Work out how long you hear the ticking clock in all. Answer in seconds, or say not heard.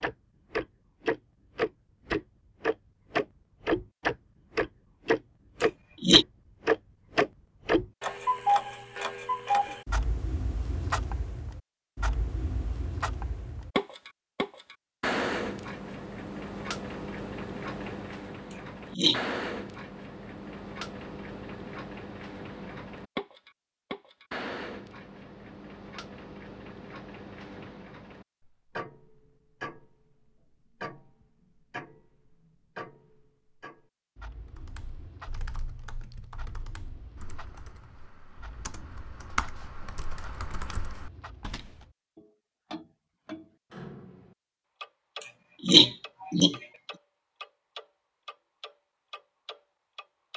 50 s.